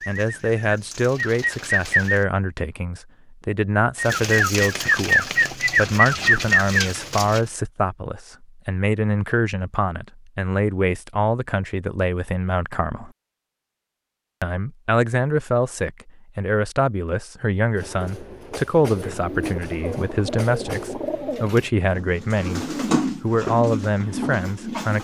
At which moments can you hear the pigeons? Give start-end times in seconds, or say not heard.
0.0-2.2, 4.0-7.4, 18.9-25.0.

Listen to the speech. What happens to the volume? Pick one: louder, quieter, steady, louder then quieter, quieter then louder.
steady.